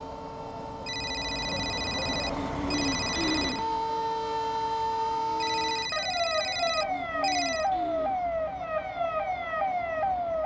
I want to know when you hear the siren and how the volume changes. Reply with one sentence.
The siren can be heard from 0.0 to 10.4 s, getting louder.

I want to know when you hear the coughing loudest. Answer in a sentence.
The volume of the coughing peaks at 3 seconds.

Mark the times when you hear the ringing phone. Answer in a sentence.
You can hear the ringing phone from 0.8 to 3.6 s and from 5.4 to 7.7 s.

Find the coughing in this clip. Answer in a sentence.
You can hear the coughing from 2.2 to 3.6 s and from 6.8 to 8.2 s.